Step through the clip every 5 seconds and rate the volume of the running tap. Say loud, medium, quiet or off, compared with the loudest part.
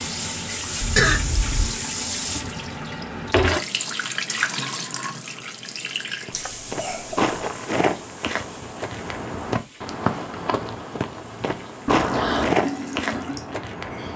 loud, medium, medium.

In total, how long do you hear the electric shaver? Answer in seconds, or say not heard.
not heard.